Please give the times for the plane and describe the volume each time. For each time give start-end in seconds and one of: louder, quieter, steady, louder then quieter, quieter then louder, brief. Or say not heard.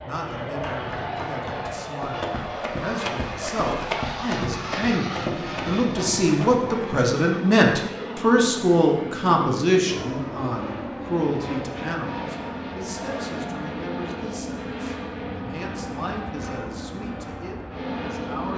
0.0-18.5 steady.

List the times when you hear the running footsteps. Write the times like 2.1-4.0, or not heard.
0.4-7.2.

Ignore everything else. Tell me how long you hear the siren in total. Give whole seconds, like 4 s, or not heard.
not heard.